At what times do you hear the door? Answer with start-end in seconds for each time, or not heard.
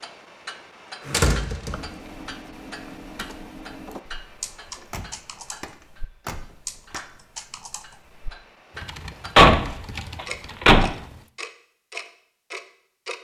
1.1-1.8, 4.8-7.0, 9.3-10.9.